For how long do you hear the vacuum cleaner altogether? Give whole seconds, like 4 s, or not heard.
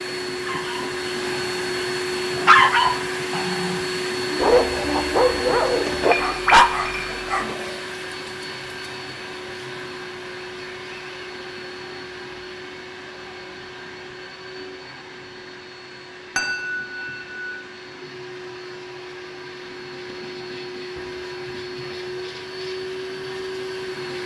24 s.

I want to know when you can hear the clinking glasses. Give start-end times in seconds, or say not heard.
6.0-7.8, 16.4-16.9.